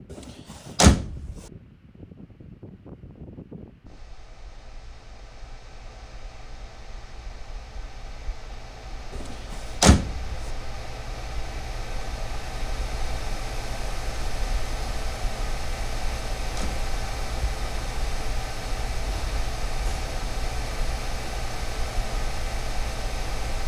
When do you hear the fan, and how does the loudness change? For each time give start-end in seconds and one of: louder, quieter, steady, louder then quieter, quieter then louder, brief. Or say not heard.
0.0-23.6 louder.